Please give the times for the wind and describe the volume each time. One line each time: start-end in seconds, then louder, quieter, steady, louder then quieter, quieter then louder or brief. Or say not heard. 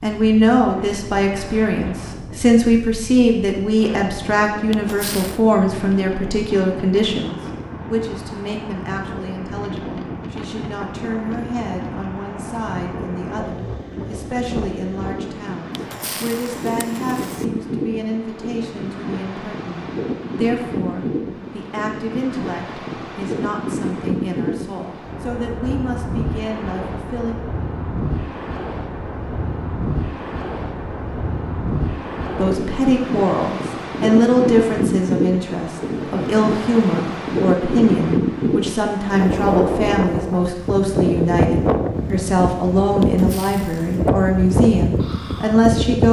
0.0-46.0 louder.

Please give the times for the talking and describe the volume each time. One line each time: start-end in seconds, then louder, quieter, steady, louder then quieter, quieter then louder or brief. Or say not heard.
0.0-27.4 quieter
32.4-46.0 steady.